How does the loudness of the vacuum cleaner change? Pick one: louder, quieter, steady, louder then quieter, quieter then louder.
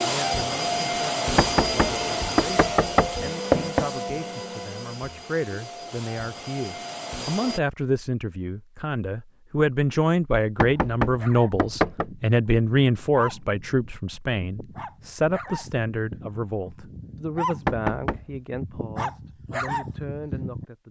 quieter.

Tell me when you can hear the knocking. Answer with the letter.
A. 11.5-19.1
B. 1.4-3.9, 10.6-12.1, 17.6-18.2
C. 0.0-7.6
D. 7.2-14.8
B.